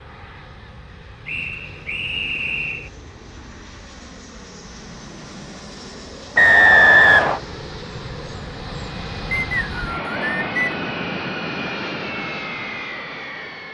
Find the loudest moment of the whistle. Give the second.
7 s.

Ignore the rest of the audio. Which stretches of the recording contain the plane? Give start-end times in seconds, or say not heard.
0.0-13.6.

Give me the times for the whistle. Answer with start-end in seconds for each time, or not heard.
1.2-2.9, 6.3-7.4, 9.3-10.8.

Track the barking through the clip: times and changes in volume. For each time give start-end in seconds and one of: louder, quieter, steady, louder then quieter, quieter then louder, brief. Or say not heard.
not heard.